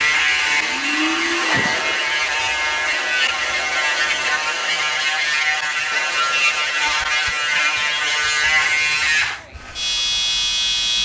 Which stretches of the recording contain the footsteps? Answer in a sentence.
You can't hear the footsteps here.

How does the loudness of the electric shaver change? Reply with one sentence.
The loudness of the electric shaver stays about the same.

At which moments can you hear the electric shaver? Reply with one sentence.
You can hear the electric shaver from 0.0 to 11.0 s.